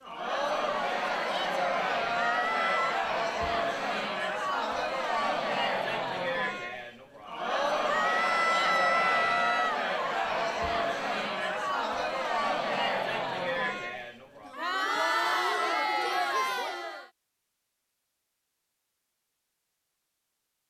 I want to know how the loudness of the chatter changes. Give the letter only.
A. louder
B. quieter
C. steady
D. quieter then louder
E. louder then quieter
C.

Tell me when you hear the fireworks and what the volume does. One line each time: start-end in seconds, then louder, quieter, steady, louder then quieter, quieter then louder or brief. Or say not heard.
not heard.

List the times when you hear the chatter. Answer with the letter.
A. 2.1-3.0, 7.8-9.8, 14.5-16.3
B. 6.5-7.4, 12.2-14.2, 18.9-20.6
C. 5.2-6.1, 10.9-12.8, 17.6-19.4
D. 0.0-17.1
D.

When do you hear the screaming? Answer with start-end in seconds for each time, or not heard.
2.1-3.0, 7.8-9.8, 14.5-16.3.